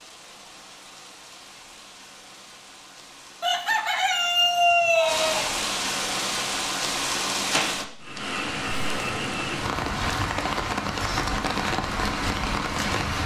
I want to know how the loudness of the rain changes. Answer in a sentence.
The volume of the rain goes up.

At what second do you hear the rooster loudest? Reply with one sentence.
The volume of the rooster peaks at 5 seconds.